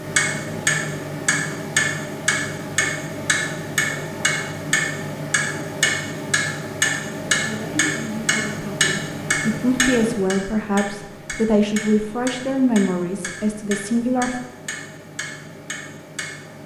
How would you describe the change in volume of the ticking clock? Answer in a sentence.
The loudness of the ticking clock goes down.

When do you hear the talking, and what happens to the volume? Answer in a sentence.
The talking can be heard from 7.4 to 14.3 s, getting louder.